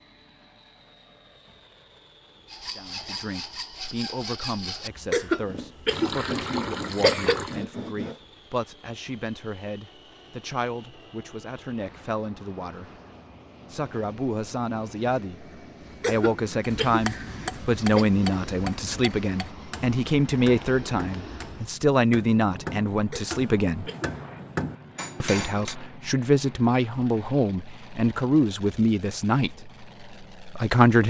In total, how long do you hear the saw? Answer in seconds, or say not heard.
6 s.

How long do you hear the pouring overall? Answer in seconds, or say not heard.
2 s.